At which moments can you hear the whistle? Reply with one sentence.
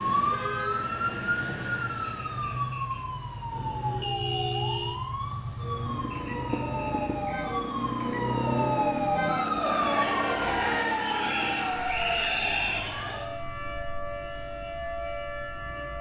The whistle can be heard from 2.0 to 3.0 s, from 6.1 to 7.5 s and from 11.2 to 12.9 s.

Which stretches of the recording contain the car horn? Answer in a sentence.
The car horn can be heard from 3.5 to 5.0 s and from 9.8 to 10.8 s.